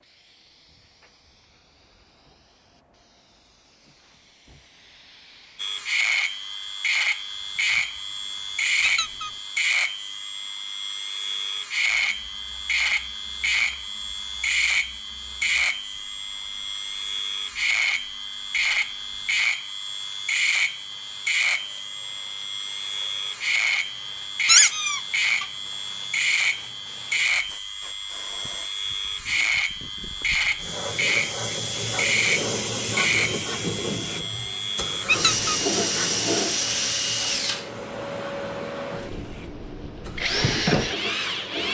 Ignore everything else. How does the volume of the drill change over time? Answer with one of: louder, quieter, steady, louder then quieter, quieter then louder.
steady.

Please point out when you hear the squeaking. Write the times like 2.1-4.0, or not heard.
8.8-9.3, 24.4-25.4, 35.0-35.5.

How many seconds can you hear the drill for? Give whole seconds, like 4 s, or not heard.
36 s.